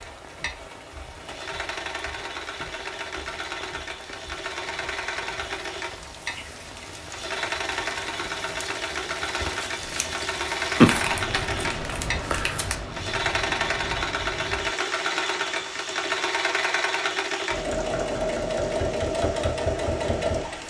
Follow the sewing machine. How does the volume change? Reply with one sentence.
The volume of the sewing machine goes up.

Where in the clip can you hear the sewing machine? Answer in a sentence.
You can hear the sewing machine from 0.0 to 20.6 s.